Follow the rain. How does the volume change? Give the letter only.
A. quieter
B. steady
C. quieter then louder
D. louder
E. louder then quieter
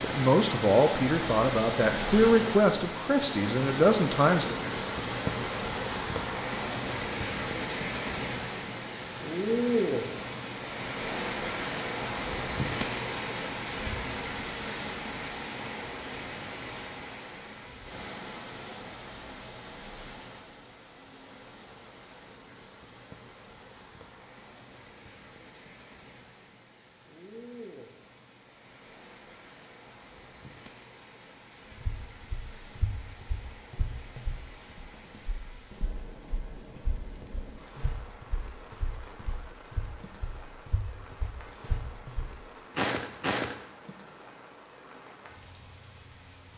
A.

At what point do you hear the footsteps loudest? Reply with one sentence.
The volume of the footsteps peaks at 43 seconds.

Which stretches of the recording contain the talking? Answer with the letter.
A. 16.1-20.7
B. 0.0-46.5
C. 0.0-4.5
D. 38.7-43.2
C.